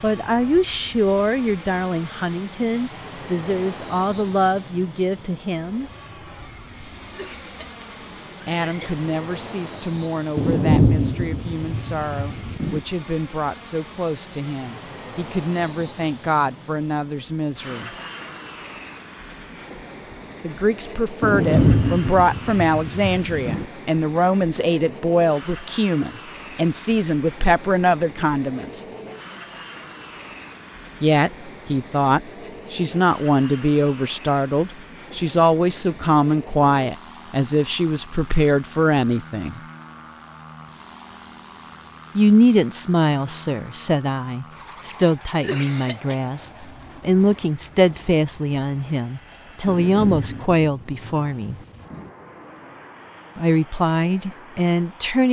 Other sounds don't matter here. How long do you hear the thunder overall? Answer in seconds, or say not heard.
7 s.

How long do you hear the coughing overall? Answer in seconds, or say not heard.
3 s.